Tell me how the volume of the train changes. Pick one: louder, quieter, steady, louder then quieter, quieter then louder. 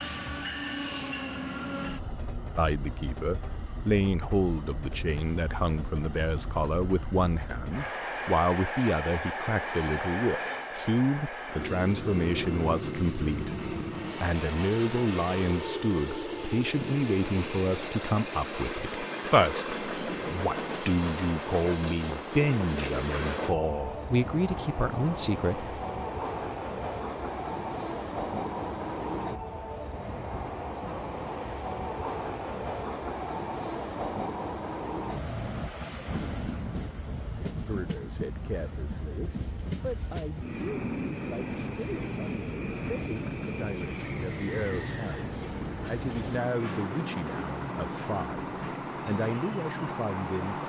steady.